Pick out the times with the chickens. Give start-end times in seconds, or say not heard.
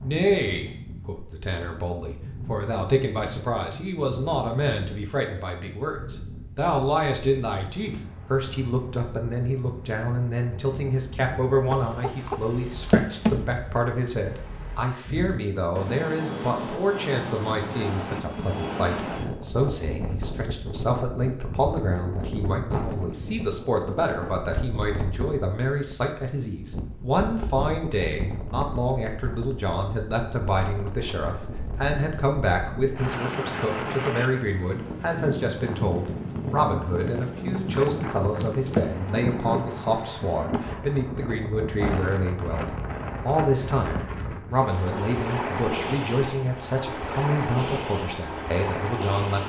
11.7-13.4, 37.5-39.0.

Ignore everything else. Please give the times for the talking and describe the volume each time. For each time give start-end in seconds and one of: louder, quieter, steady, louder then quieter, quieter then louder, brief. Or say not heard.
0.0-49.4 steady.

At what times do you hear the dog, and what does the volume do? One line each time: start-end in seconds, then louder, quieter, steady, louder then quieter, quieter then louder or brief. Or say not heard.
not heard.